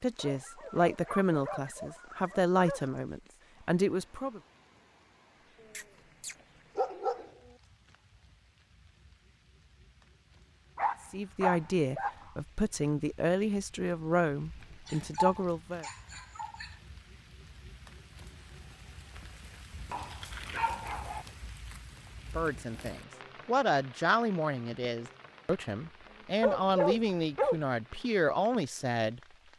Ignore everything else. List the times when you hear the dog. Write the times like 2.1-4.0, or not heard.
0.1-3.0, 5.7-7.3, 10.8-12.2, 14.8-16.7, 19.7-21.2, 26.4-27.6.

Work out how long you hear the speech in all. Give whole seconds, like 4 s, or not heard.
16 s.